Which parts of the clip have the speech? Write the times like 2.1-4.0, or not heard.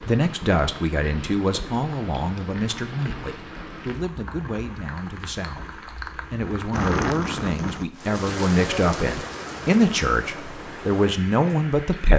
0.1-12.1.